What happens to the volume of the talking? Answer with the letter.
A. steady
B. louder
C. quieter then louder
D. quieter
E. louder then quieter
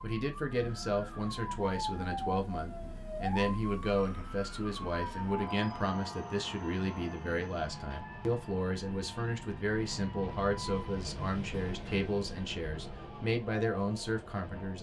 A.